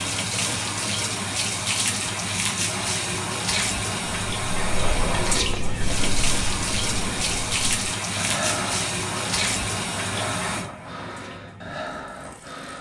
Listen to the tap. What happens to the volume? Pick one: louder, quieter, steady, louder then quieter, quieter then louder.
quieter.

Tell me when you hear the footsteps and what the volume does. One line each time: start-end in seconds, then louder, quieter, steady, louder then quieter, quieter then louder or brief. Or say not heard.
not heard.